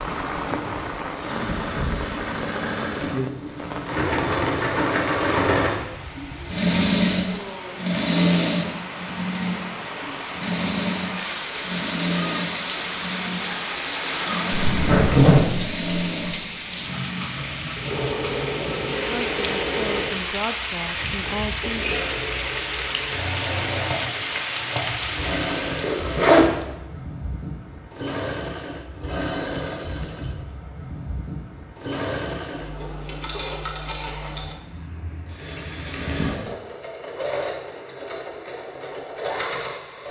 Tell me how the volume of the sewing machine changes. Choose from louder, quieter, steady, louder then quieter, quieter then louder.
quieter.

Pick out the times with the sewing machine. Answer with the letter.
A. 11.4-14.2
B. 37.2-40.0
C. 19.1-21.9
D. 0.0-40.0
D.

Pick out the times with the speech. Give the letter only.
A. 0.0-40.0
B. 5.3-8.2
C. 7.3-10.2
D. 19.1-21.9
D.